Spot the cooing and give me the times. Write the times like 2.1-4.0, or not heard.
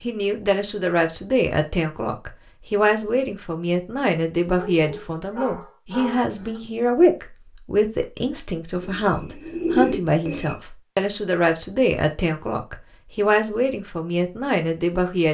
8.8-10.6.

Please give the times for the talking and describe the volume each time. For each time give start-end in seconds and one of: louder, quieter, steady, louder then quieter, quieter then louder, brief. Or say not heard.
0.0-15.2 steady.